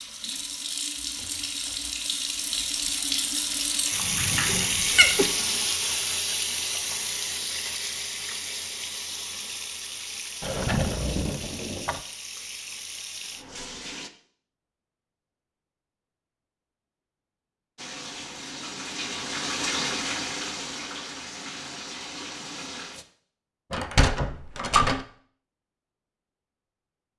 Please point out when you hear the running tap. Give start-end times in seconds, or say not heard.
0.0-14.1, 17.8-23.1.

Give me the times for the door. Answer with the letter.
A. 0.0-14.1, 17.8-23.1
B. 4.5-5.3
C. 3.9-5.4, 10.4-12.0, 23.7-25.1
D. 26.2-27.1
C.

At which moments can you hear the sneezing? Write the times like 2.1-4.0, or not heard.
4.5-5.3.